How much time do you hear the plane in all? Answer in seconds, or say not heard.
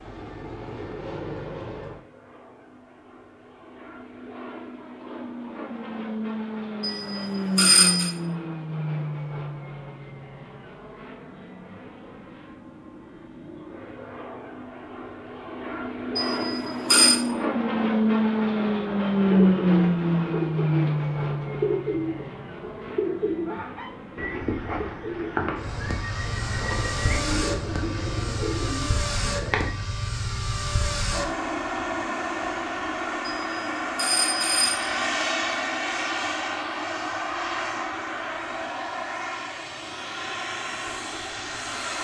42 s.